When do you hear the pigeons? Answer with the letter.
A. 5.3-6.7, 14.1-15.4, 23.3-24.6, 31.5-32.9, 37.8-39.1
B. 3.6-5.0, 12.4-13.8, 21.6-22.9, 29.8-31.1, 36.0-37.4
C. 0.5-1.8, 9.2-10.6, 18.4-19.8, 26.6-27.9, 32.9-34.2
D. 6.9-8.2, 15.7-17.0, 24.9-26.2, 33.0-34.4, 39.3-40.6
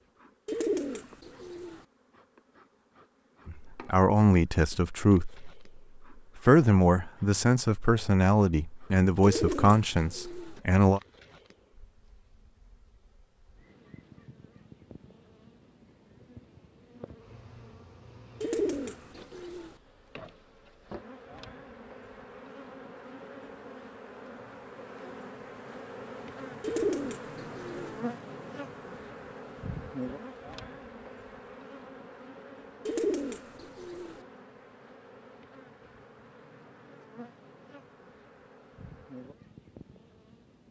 C.